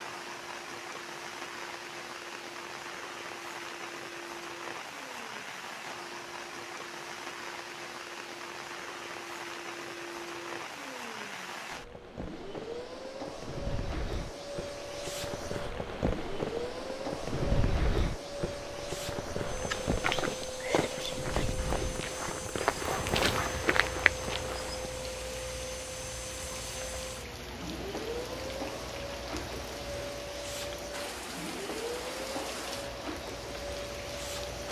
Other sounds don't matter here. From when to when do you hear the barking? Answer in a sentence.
The barking can't be heard in this clip.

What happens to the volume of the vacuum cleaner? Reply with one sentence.
The loudness of the vacuum cleaner goes up.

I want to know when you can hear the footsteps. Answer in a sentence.
The footsteps can be heard from 19.7 to 24.9 s.